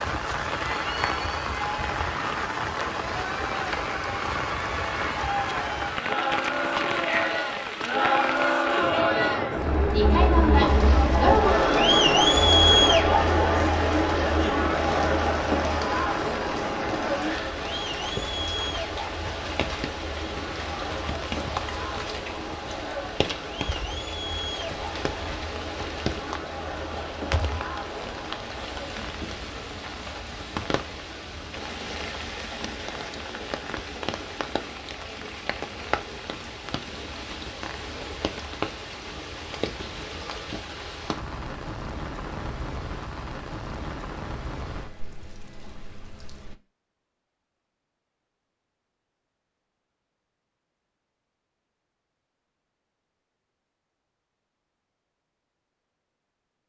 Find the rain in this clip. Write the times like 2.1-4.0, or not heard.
0.0-46.5.